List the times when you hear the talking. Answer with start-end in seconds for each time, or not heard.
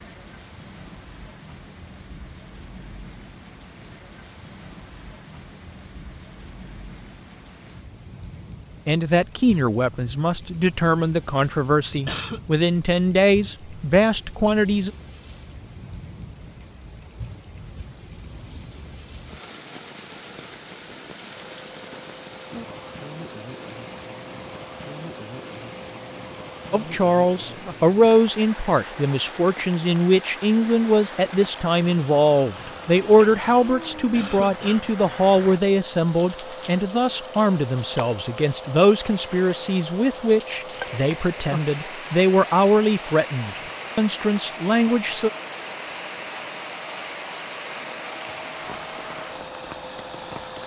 8.8-14.9, 26.7-45.3.